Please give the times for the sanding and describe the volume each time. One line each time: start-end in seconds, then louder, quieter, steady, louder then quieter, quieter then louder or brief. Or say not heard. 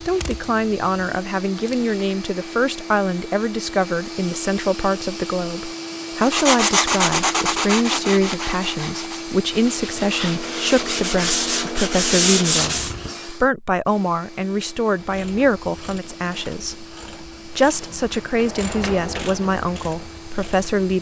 6.2-12.9 quieter then louder.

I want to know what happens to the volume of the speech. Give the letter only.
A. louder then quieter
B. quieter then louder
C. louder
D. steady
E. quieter
D.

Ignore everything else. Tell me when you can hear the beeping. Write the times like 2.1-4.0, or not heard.
not heard.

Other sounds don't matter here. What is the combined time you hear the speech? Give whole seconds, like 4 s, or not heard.
21 s.